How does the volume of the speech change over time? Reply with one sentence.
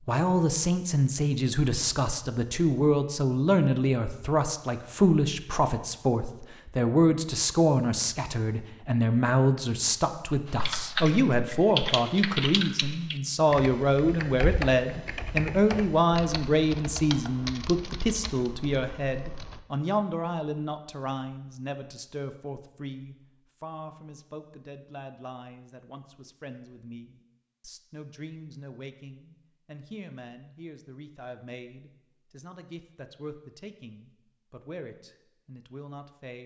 The loudness of the speech goes down.